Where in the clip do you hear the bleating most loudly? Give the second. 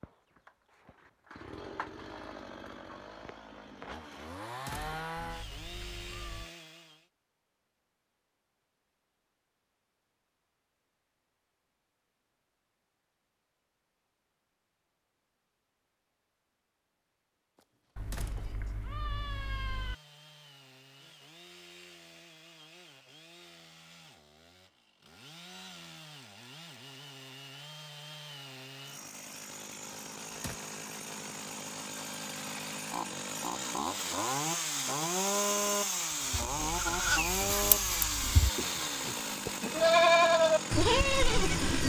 40 s.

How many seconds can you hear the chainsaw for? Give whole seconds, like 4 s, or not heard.
30 s.